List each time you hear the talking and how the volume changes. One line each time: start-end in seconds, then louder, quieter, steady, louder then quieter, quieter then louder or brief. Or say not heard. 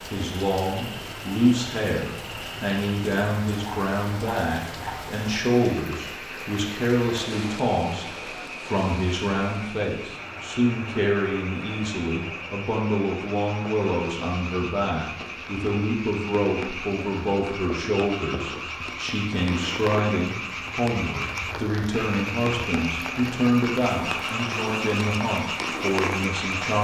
0.0-26.7 steady.